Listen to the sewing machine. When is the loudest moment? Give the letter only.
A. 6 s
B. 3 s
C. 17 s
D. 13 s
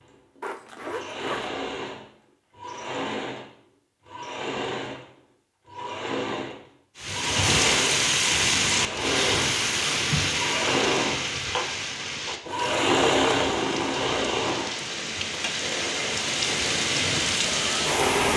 D.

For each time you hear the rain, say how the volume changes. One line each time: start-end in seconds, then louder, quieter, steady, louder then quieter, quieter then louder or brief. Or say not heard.
7.0-18.3 quieter then louder.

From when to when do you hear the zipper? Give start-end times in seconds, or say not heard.
0.4-1.5.